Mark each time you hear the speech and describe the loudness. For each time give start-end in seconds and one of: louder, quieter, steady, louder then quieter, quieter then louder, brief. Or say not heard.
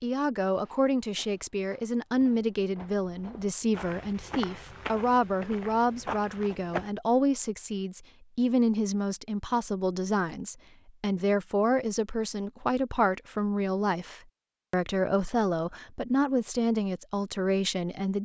0.0-18.1 steady.